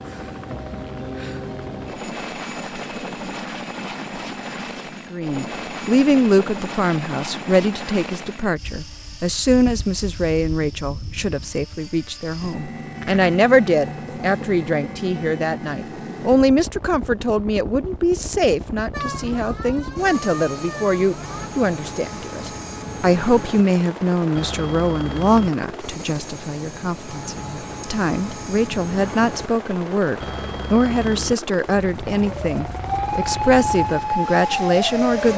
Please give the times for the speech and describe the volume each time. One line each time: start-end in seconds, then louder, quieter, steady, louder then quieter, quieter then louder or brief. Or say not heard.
5.1-35.3 steady.